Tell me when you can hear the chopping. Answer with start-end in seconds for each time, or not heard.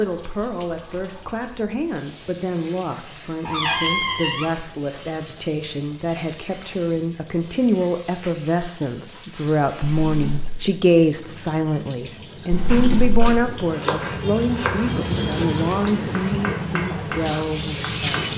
12.7-18.3.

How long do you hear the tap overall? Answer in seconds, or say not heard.
18 s.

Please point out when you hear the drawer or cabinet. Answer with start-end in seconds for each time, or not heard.
3.5-4.5, 9.8-10.6, 12.5-13.2.